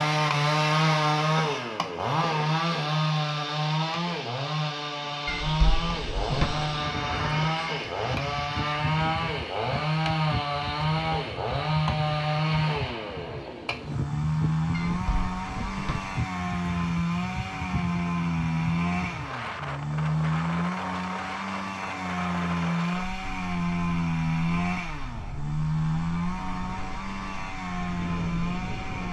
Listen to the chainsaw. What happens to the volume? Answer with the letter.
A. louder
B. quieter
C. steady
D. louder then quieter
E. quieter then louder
C.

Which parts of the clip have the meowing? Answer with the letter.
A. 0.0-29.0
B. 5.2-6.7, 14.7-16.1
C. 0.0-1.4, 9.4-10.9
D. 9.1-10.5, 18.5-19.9
B.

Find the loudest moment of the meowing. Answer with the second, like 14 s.
6 s.